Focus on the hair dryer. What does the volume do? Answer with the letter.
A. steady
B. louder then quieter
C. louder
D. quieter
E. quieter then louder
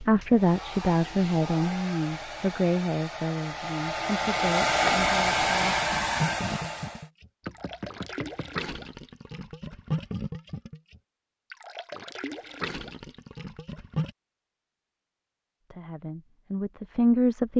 C.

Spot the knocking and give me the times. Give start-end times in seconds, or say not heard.
7.5-8.7.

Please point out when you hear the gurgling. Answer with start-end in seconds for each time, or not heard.
4.8-14.2.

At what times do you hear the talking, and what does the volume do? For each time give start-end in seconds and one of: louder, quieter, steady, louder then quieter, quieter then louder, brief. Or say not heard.
0.0-5.8 quieter
15.7-17.5 brief.